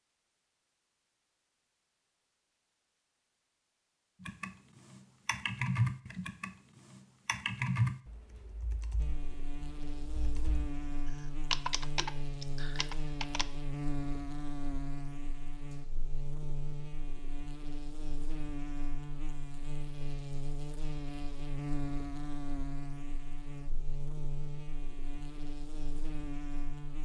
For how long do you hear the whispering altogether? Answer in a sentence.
The whispering can't be heard in this clip.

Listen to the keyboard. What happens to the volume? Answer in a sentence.
The loudness of the keyboard goes down, then up.